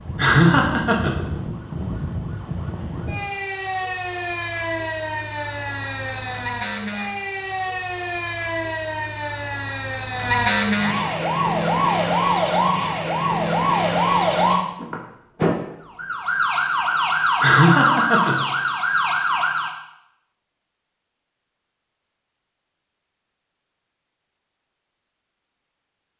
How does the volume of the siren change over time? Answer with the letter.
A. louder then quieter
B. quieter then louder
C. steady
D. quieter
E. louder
E.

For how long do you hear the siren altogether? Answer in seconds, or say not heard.
20 s.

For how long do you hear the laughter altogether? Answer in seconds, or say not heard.
2 s.